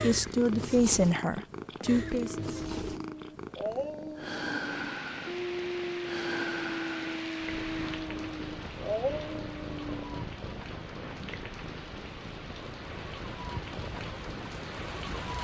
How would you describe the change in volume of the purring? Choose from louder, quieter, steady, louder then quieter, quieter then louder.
quieter.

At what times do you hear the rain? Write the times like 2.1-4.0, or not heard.
4.5-15.4.